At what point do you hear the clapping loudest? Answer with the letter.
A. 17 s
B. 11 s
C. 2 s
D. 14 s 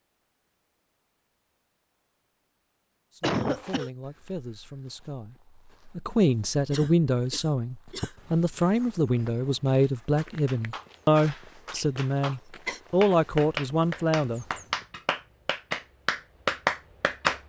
A.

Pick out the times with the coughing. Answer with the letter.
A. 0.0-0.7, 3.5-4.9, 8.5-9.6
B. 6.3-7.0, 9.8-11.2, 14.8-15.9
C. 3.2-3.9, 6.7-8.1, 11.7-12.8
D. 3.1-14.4
C.